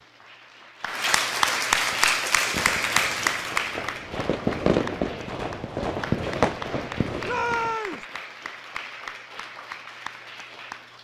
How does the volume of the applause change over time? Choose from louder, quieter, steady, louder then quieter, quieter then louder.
quieter.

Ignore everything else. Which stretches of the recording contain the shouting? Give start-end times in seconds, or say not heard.
7.2-8.1.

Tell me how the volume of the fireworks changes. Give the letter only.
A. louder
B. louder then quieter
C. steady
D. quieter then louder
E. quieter
B.